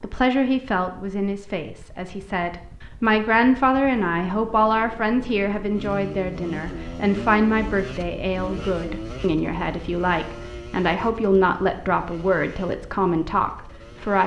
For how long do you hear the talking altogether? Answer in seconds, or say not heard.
14 s.